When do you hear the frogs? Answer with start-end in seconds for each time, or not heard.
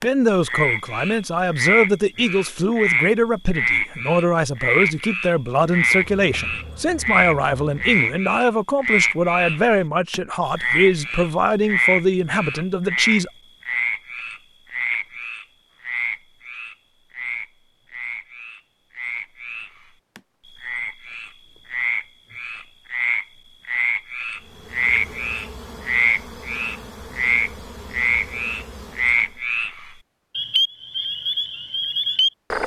0.0-32.6.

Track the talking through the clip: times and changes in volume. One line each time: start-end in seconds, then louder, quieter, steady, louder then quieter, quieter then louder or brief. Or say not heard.
0.0-13.3 steady.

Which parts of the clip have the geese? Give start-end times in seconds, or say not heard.
not heard.